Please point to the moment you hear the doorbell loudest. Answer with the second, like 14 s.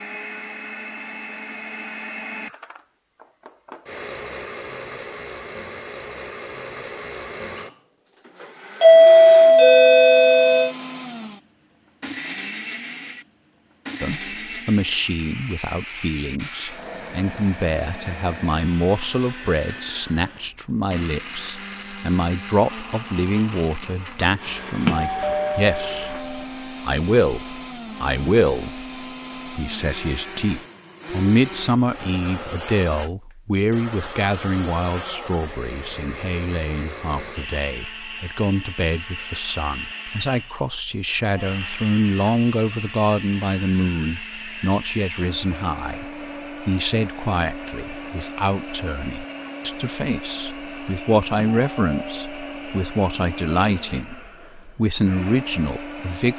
9 s.